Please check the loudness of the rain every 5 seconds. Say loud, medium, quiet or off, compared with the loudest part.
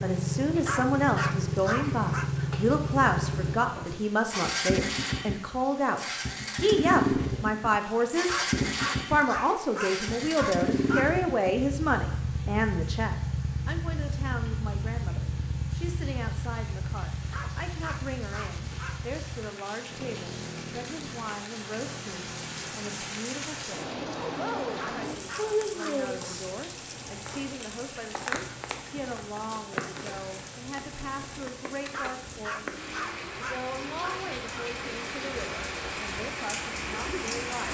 quiet, quiet, quiet, quiet, loud, loud, medium, loud.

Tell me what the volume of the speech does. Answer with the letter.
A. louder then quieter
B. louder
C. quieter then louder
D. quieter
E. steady
D.